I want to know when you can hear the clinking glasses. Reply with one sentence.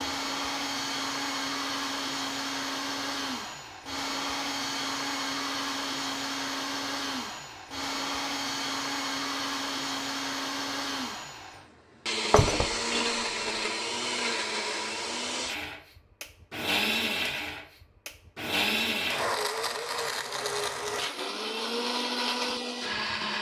The clinking glasses can be heard from 12.3 to 13.6 s.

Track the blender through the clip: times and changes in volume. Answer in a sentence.
The blender can be heard from 0.0 to 23.3 s, at a steady volume.